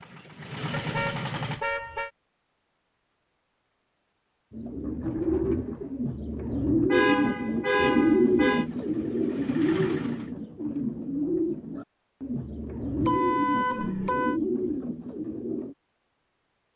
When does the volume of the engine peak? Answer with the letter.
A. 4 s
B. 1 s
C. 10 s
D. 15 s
B.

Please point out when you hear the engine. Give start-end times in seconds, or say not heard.
0.0-1.6, 8.6-10.3.